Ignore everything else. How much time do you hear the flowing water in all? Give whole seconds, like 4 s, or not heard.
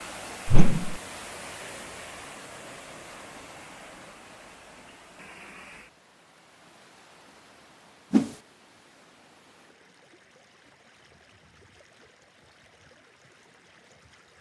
14 s.